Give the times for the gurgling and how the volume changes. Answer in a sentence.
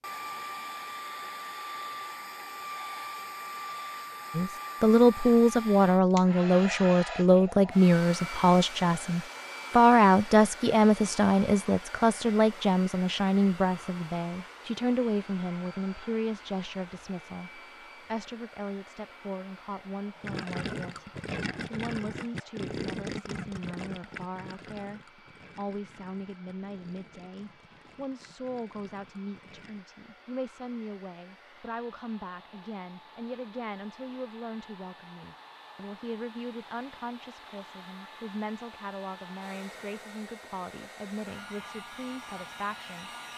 You can hear the gurgling from 20.2 to 29.9 s, getting quieter.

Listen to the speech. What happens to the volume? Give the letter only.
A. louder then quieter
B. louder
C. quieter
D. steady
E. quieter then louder
C.